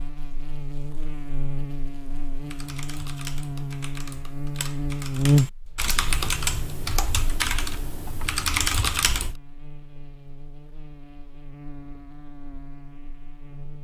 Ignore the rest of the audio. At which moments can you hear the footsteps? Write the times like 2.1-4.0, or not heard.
not heard.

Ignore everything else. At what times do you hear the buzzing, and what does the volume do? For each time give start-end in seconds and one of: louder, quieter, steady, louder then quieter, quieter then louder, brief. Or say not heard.
0.0-13.7 louder then quieter.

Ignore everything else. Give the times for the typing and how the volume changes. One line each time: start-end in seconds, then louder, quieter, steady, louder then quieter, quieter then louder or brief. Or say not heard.
2.4-9.3 louder.